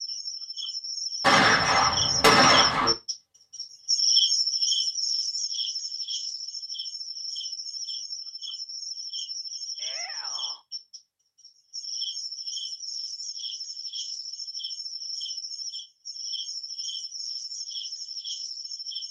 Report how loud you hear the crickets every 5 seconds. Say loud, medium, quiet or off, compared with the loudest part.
loud, medium, medium, medium.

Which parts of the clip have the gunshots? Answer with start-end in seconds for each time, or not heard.
1.2-3.0.